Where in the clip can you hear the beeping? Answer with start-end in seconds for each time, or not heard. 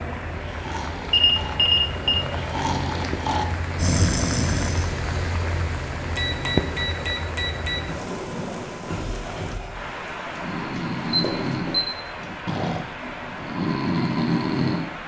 1.1-2.1, 6.2-7.8, 11.1-11.9.